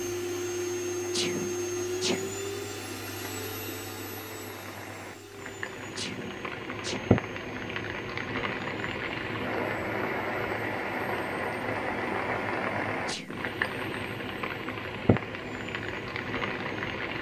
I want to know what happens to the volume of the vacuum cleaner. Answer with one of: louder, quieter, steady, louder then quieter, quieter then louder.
quieter.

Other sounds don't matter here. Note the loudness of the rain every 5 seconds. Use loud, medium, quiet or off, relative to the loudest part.
quiet, loud, loud, loud.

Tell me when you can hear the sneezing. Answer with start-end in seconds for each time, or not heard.
1.0-2.4, 6.0-7.2, 12.9-13.4.